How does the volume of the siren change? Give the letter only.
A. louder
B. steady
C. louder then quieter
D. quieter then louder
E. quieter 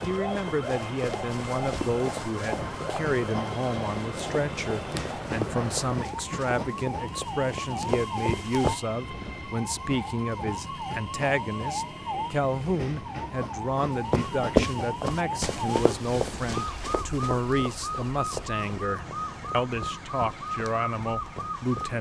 B.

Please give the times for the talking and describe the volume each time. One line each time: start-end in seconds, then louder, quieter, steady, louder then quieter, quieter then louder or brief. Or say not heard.
0.1-21.9 steady.